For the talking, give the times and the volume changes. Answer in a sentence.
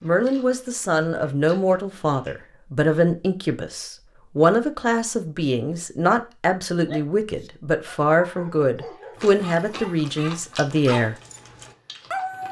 The talking can be heard from 0.0 to 11.2 s, at a steady volume.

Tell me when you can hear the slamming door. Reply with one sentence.
You can't hear the slamming door here.